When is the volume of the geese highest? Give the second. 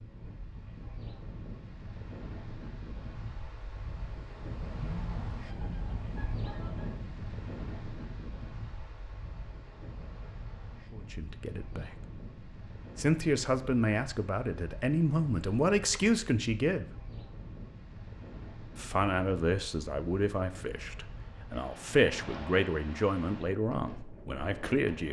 5 s.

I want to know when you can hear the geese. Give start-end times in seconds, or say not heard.
4.7-7.1.